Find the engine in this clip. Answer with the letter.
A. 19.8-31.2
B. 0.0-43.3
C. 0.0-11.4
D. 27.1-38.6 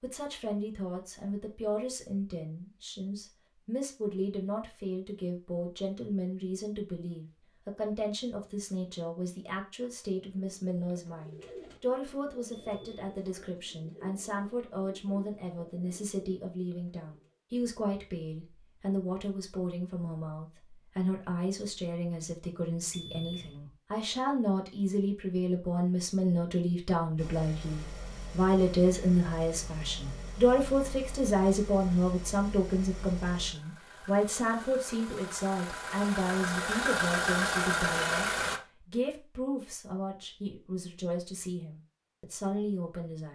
D.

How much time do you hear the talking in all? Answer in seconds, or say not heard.
43 s.